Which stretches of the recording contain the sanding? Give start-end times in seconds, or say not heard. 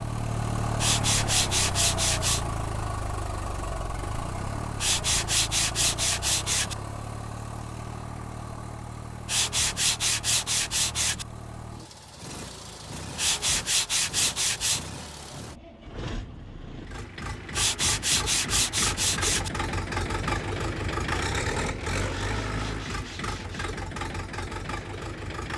0.8-2.5, 4.8-6.8, 9.2-11.2, 13.2-14.9, 17.5-19.5, 22.2-23.7.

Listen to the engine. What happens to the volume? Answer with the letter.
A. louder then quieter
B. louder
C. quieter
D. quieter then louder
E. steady
D.